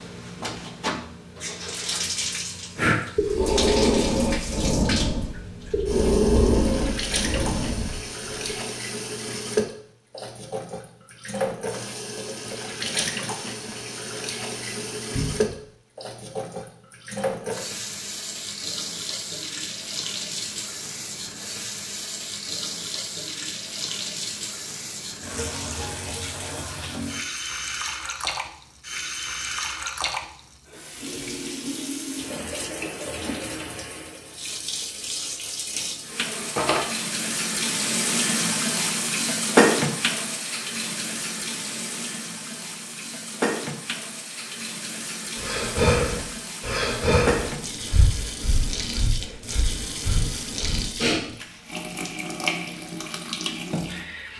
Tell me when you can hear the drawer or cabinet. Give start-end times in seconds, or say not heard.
15.2-15.7, 36.4-36.9.